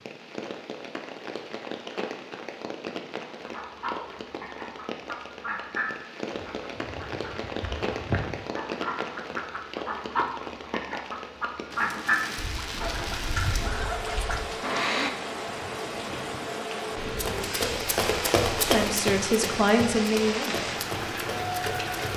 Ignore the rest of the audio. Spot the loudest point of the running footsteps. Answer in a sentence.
The volume of the running footsteps peaks at 19 seconds.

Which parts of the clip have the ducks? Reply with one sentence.
You can hear the ducks from 3.4 to 15.1 s.